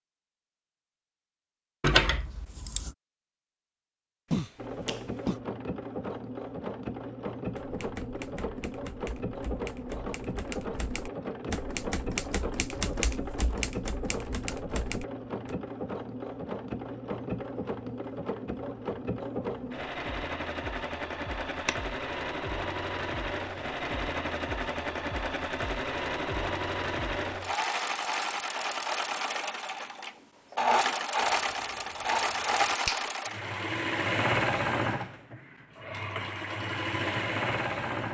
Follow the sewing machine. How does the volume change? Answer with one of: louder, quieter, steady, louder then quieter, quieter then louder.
louder.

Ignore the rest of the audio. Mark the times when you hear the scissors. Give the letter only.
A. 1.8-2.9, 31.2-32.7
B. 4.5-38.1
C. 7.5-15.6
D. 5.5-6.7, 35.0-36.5
A.